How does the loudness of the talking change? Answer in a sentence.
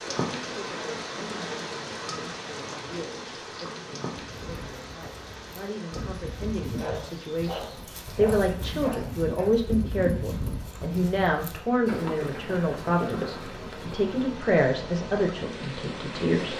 The volume of the talking goes up.